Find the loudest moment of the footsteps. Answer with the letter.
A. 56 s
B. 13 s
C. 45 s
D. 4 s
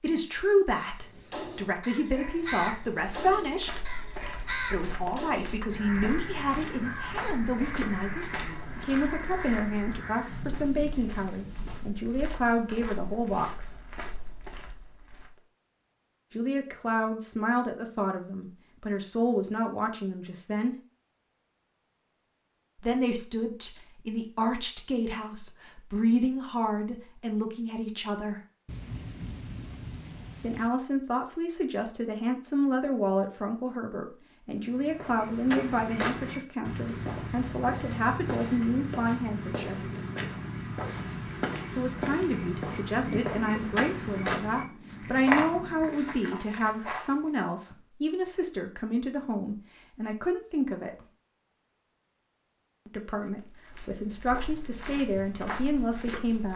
C.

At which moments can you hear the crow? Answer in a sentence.
The crow can be heard from 0.7 to 10.6 s.